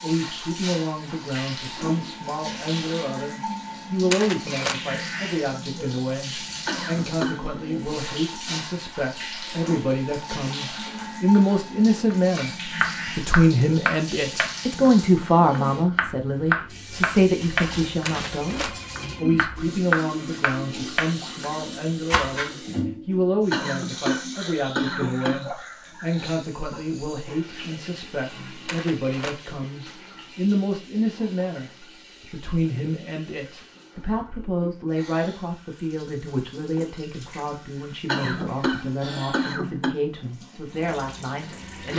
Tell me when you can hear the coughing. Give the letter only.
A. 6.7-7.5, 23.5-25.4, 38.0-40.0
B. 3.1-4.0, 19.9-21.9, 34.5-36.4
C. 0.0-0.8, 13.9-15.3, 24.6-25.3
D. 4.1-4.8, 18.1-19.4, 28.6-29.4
A.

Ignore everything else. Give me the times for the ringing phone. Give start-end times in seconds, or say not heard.
4.1-4.8, 18.1-19.4, 28.6-29.4.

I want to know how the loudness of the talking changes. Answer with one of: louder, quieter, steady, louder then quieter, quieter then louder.
louder then quieter.